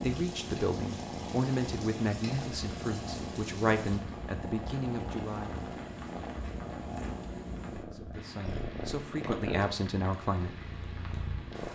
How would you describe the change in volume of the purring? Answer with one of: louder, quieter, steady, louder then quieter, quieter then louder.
steady.